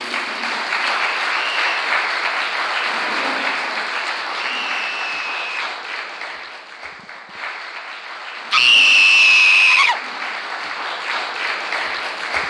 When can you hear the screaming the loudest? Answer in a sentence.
The loudest moment of the screaming is at 9 seconds.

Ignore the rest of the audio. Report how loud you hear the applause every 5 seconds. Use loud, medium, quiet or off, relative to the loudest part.
loud, medium, loud.